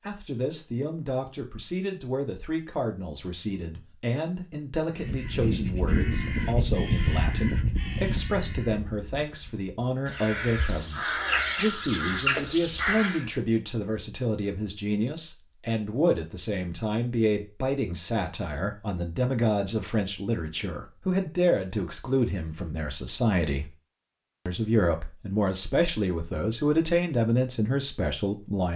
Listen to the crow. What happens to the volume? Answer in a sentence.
The loudness of the crow goes down, then up.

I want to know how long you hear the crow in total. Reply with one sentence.
The crow can be heard for 8 seconds in total.